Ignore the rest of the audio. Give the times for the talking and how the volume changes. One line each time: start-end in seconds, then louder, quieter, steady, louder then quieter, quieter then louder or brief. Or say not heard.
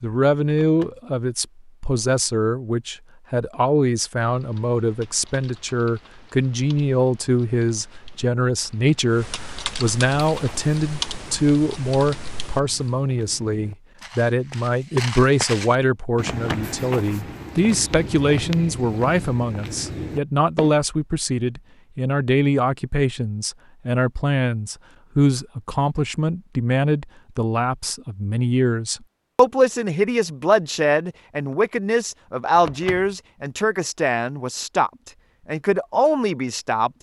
0.0-36.9 steady.